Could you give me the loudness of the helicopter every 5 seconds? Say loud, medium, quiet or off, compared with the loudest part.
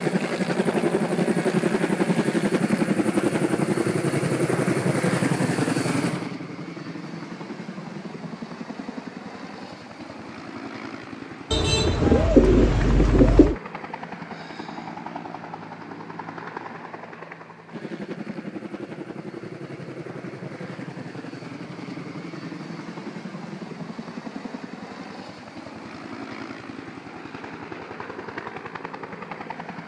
loud, medium, quiet, quiet, quiet, quiet.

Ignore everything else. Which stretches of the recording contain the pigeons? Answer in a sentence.
The pigeons can be heard from 11.5 to 13.6 s.